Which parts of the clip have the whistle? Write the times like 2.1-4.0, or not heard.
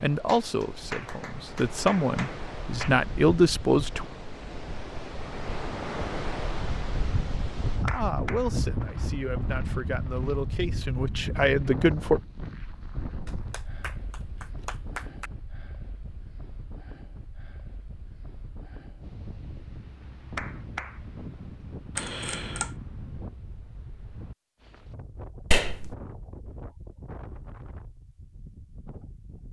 not heard.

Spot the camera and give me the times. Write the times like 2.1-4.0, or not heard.
21.9-22.8.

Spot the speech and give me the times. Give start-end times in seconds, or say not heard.
0.0-4.0, 7.8-12.2.